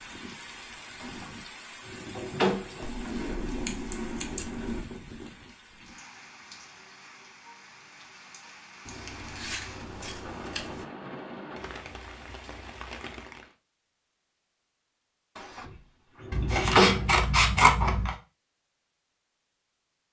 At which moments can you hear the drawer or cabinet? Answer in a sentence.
You can hear the drawer or cabinet from 1.0 to 3.1 s and from 15.3 to 17.2 s.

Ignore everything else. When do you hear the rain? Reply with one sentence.
The rain can be heard from 0.0 to 13.6 s.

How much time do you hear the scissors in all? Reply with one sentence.
The scissors can be heard for 6 seconds in total.